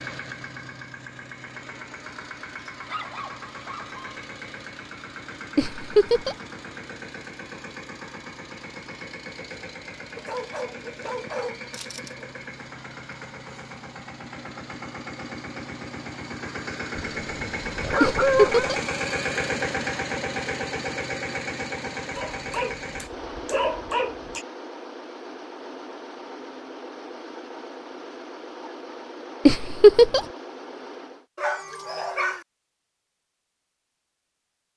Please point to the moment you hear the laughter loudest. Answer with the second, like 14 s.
30 s.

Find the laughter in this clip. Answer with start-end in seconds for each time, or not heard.
5.5-6.3, 18.0-18.8, 29.4-30.2.